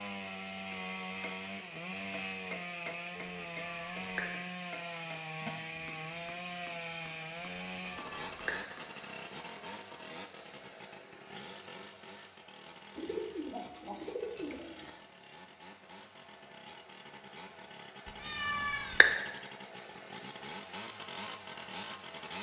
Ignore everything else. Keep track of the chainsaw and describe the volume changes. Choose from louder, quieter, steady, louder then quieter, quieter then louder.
quieter then louder.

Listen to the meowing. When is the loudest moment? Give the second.
19 s.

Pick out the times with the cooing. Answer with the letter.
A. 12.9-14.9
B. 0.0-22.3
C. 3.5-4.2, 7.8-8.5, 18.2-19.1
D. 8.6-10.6
A.